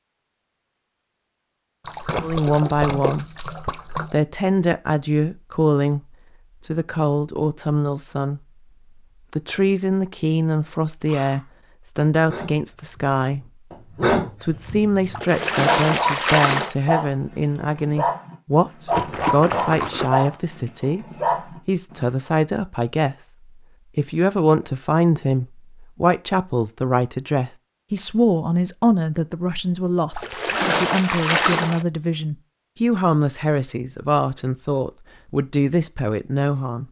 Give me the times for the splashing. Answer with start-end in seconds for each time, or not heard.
1.9-4.2, 15.1-16.8, 18.9-20.1, 30.1-31.9.